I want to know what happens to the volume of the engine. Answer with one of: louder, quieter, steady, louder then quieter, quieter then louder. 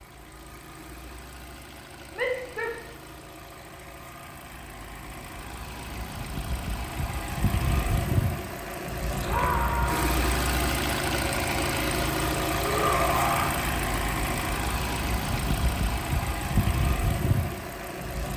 louder.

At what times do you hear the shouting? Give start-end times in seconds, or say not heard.
2.1-2.8, 9.2-10.2, 12.6-13.6.